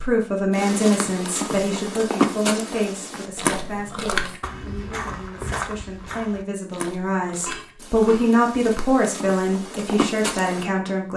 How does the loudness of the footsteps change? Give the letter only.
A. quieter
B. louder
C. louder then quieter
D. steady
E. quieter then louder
E.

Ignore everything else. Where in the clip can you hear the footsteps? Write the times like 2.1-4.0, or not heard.
0.5-10.7.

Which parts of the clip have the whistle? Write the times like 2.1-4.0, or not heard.
not heard.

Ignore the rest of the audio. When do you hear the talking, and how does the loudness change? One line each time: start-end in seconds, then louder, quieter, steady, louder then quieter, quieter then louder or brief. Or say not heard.
0.0-11.1 quieter then louder.